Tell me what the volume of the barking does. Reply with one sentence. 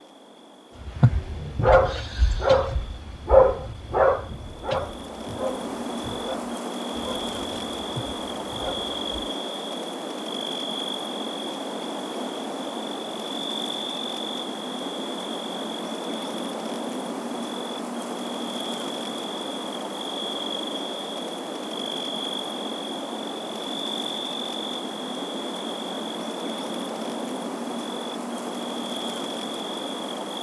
The loudness of the barking goes down.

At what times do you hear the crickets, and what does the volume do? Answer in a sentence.
You can hear the crickets from 0.0 to 30.3 s, getting louder.